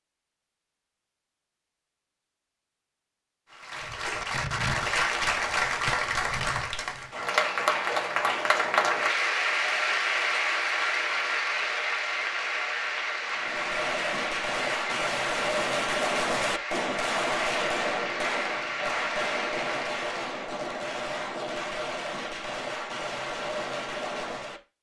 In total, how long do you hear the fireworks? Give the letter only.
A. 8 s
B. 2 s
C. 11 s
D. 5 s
C.